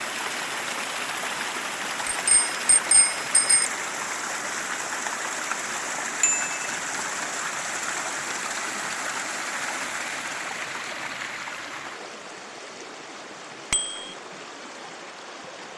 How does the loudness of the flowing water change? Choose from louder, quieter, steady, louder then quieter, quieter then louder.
quieter.